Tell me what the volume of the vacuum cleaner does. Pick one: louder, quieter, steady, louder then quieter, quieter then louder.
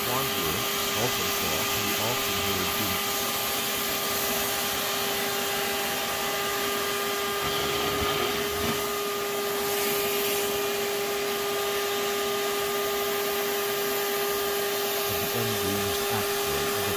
steady.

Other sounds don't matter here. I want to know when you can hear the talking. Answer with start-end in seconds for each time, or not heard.
0.0-3.0, 15.1-16.9.